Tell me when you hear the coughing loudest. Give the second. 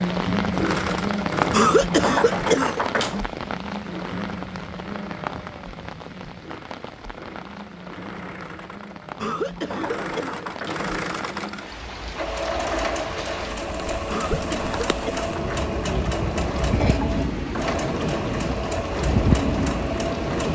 2 s.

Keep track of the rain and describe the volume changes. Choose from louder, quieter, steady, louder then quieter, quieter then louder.
quieter then louder.